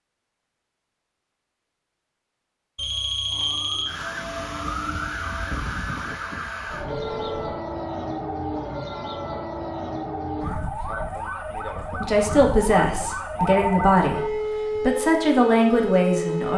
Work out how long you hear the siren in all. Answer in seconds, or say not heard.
13 s.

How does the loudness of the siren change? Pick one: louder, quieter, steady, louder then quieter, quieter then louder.
steady.